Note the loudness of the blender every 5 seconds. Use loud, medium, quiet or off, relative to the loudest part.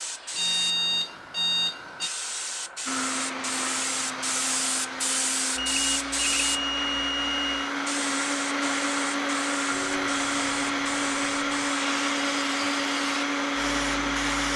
medium, loud, loud.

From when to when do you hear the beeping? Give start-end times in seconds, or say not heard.
0.3-2.1, 5.5-7.7, 9.7-11.7.